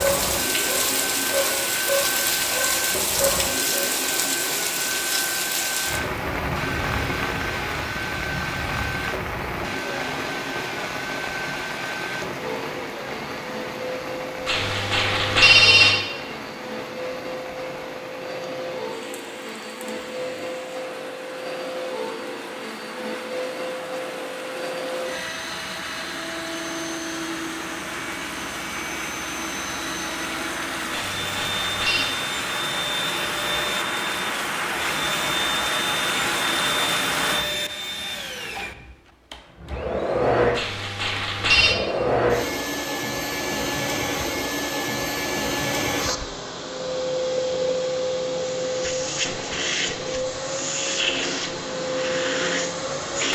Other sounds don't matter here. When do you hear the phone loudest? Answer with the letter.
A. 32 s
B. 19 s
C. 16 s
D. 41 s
C.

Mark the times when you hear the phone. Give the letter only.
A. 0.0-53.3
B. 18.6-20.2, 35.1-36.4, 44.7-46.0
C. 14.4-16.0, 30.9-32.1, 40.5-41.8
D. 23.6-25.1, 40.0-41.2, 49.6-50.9
C.